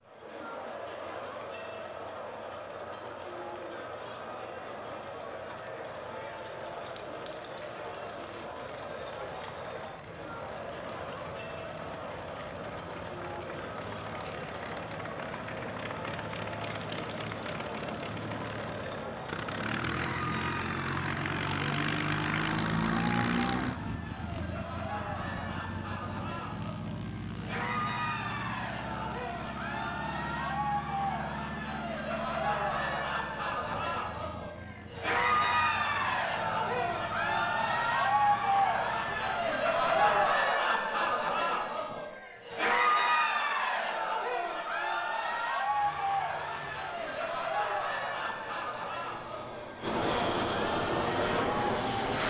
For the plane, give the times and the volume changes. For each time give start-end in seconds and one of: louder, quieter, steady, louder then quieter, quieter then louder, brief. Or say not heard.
0.0-40.5 louder then quieter
45.6-52.2 louder.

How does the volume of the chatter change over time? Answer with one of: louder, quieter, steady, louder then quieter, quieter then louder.
louder.